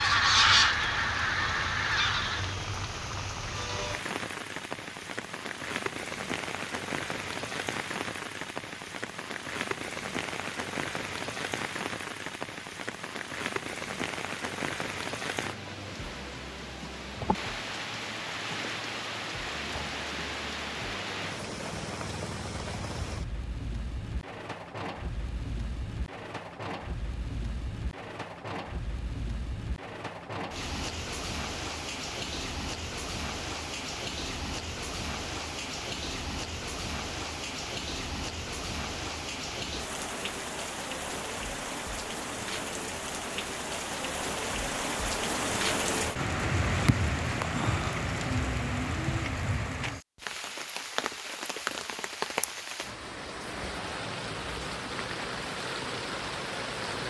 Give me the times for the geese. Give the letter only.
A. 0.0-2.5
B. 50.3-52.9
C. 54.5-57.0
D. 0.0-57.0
A.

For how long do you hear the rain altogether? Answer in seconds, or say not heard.
57 s.